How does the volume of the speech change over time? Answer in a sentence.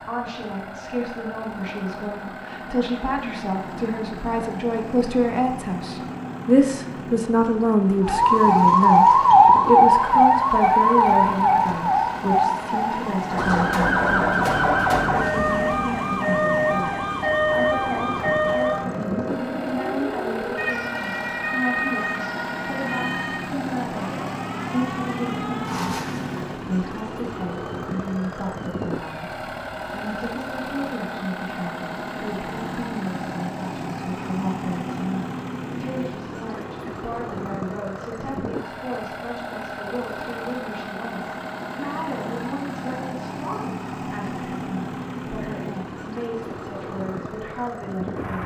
The volume of the speech goes down.